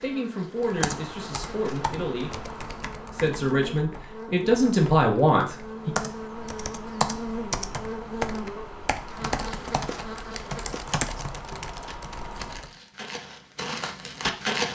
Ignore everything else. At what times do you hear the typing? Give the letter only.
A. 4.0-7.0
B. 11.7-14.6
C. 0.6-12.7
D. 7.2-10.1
C.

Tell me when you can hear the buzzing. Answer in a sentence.
The buzzing can be heard from 0.0 to 10.8 s.